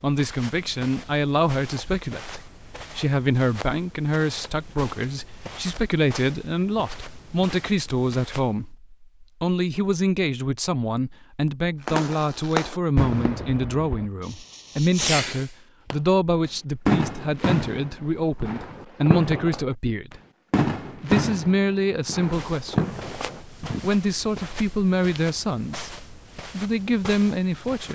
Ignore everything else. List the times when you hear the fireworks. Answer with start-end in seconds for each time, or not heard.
11.8-15.9, 16.9-23.9.